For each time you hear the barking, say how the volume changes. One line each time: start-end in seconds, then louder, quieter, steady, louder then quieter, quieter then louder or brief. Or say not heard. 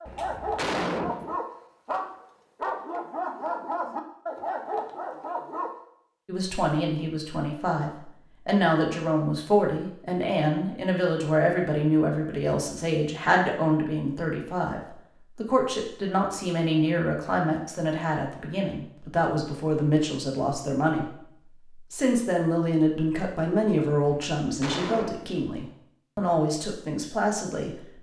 0.0-5.8 steady.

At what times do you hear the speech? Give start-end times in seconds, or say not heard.
6.2-27.9.